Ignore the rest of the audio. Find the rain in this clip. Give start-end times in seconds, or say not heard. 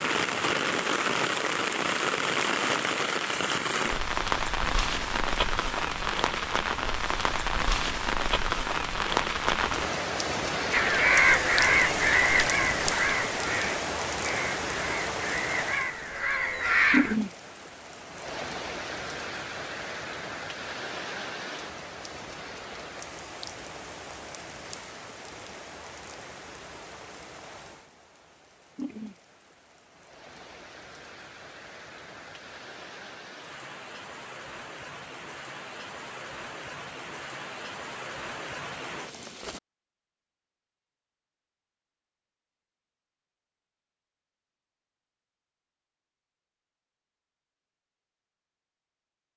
0.0-39.6.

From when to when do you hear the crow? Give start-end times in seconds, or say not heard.
10.7-17.1.